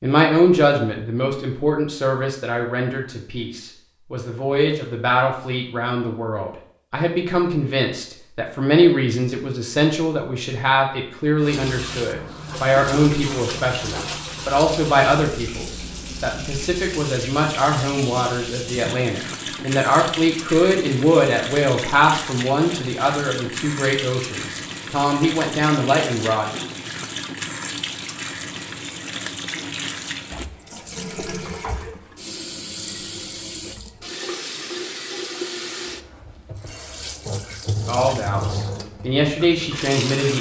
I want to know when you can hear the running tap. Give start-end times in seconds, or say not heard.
11.4-40.3.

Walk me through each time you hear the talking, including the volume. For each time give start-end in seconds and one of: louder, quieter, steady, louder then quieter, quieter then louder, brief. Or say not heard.
0.0-26.5 steady
37.9-40.3 brief.